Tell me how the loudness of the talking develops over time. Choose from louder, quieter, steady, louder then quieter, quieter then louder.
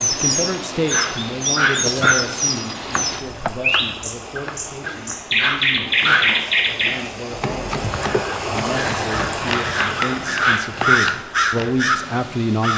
quieter then louder.